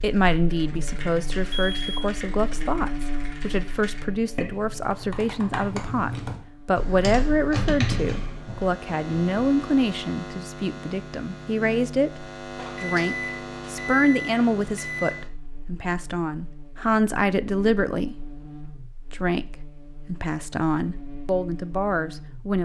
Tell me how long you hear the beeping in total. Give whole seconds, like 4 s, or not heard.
3 s.